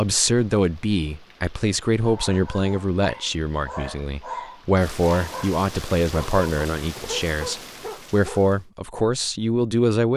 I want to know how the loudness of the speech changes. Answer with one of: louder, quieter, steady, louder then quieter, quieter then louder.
steady.